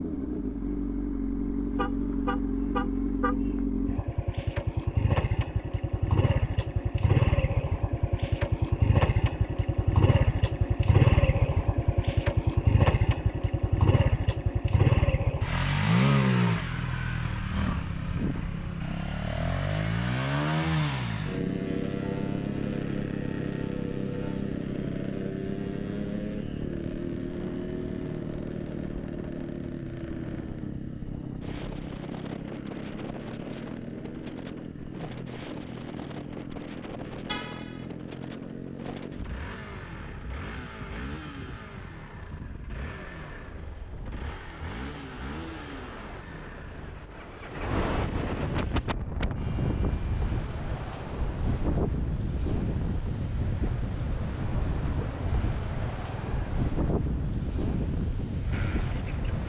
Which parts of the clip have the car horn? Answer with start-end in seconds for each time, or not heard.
1.6-3.7, 37.2-37.9.